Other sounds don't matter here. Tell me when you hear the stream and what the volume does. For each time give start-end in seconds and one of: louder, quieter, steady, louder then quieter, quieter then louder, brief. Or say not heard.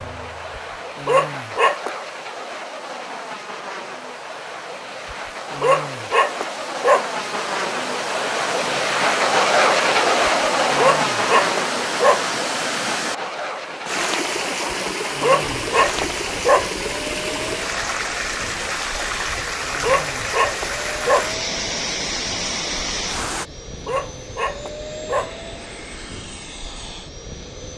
0.0-23.4 louder.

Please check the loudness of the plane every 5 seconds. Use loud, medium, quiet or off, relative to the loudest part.
medium, loud, loud, quiet, quiet, quiet.